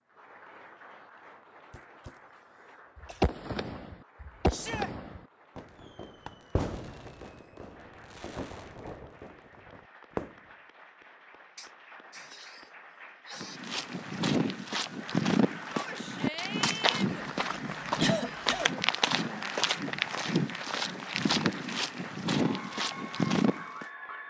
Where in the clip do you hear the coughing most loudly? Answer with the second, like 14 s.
18 s.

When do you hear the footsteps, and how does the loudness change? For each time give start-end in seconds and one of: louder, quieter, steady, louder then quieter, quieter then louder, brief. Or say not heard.
13.4-23.9 steady.